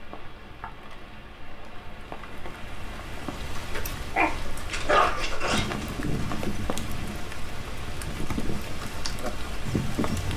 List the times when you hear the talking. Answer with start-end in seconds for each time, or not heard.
not heard.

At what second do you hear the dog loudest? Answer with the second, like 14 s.
5 s.